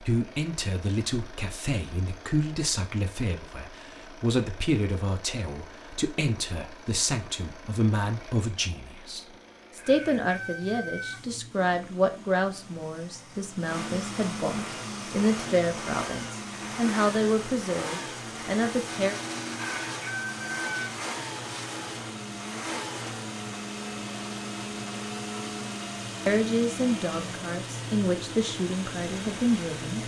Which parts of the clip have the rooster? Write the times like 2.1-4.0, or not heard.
9.8-11.2, 19.5-20.9.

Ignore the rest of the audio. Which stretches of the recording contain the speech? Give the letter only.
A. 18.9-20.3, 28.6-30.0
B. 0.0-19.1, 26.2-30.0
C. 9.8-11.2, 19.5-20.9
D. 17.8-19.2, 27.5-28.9
B.